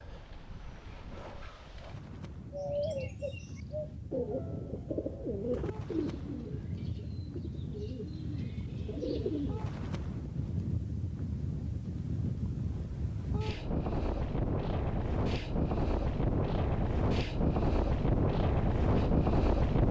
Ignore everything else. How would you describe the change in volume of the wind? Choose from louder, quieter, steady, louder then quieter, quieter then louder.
louder.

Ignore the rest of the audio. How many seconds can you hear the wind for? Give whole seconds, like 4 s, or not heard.
20 s.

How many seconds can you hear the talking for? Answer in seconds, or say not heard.
not heard.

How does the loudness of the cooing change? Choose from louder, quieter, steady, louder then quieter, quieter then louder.
quieter then louder.